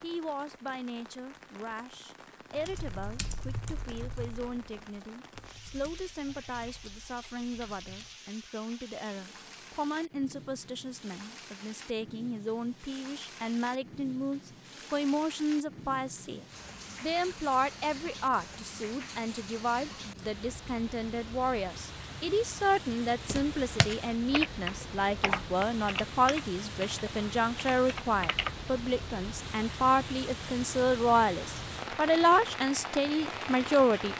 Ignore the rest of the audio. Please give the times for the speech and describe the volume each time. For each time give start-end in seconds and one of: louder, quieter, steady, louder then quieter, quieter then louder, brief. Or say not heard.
0.0-34.1 louder.